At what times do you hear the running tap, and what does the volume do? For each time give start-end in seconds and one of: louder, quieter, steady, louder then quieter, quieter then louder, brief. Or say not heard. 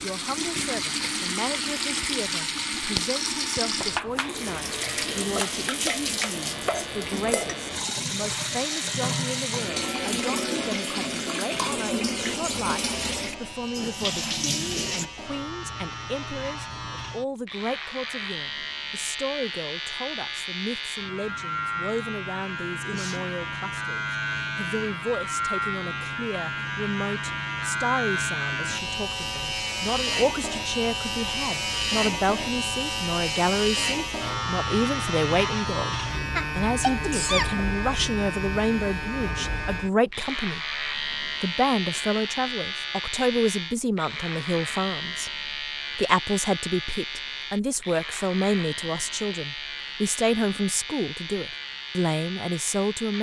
0.0-15.1 steady.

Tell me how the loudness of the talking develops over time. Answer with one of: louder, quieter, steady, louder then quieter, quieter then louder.
louder.